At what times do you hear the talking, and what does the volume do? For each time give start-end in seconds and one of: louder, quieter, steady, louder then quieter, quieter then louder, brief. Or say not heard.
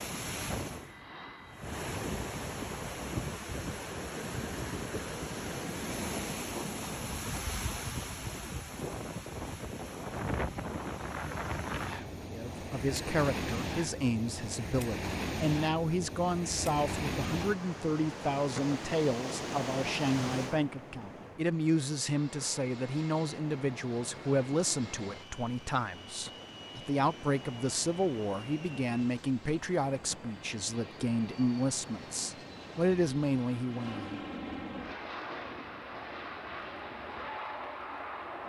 12.3-34.2 steady.